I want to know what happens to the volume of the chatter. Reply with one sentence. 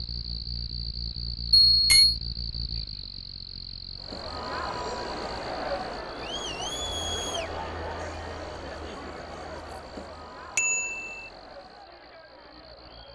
The loudness of the chatter goes down.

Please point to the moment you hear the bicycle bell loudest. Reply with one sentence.
The loudest moment of the bicycle bell is at 2 seconds.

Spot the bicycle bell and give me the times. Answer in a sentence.
You can hear the bicycle bell from 1.6 to 2.1 s and from 10.6 to 11.2 s.